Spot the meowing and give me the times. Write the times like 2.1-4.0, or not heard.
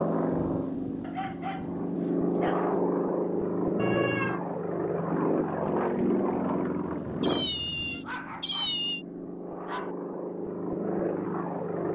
3.8-4.4, 7.2-9.1.